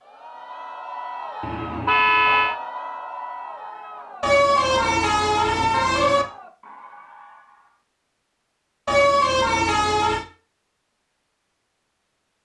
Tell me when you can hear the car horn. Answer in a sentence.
The car horn can be heard from 1.4 to 2.5 s, from 4.2 to 6.2 s and from 8.8 to 10.2 s.